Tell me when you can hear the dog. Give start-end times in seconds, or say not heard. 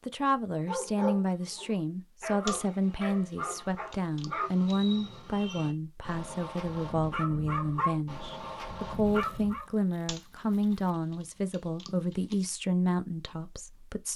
0.7-9.7.